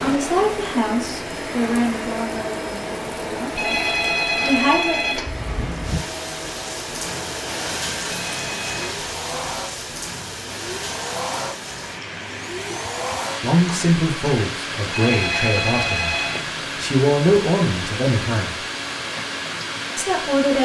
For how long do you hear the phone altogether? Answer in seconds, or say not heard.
4 s.